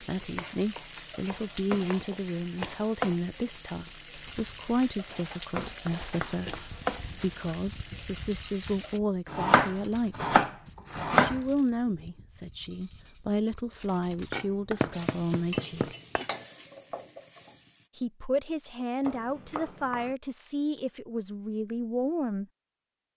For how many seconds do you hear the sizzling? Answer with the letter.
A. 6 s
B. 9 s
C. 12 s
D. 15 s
C.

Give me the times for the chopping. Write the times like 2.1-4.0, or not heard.
0.3-2.9, 5.7-7.5, 9.2-11.4, 14.3-16.3, 19.0-20.1.